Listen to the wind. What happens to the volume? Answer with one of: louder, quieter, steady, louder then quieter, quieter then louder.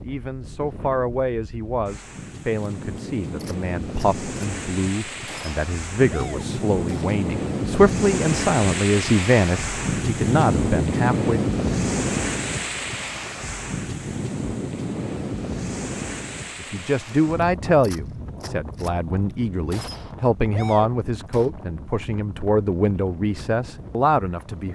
louder then quieter.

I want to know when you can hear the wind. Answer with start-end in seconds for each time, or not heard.
0.0-24.7.